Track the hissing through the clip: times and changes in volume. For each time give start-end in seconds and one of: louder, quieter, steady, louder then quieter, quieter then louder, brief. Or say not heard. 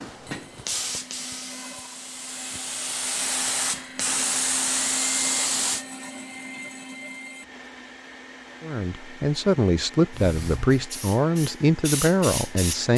0.0-5.8 quieter then louder
10.1-12.9 brief.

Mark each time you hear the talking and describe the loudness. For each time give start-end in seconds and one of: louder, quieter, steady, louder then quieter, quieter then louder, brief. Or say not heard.
8.6-12.9 steady.